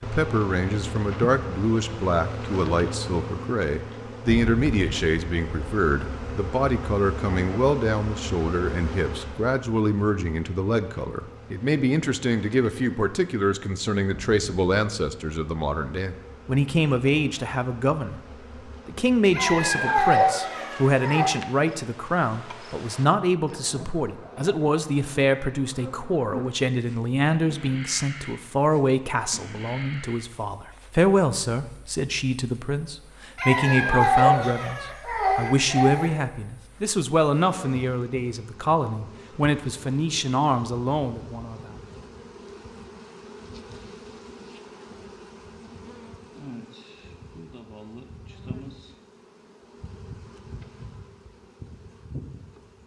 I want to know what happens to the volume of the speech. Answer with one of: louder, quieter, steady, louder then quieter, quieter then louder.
steady.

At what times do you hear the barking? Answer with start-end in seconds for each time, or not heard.
19.3-21.2, 33.4-36.1.